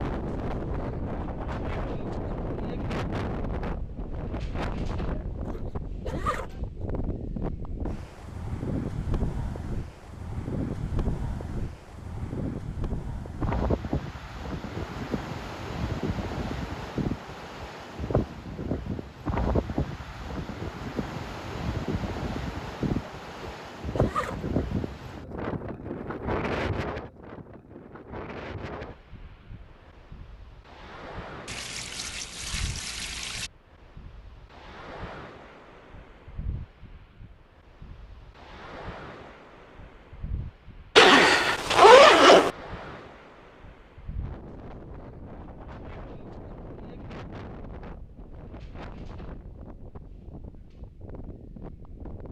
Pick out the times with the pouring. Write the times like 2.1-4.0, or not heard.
31.4-33.5.